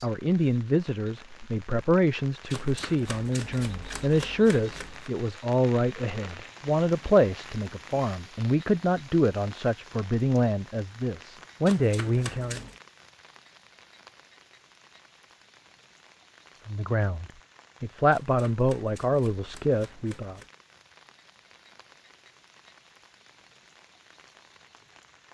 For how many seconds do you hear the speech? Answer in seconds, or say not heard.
16 s.